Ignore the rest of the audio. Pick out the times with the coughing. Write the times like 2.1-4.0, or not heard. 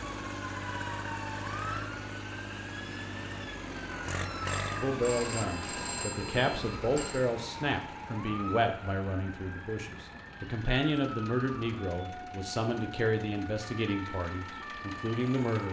not heard.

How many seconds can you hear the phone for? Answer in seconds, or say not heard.
3 s.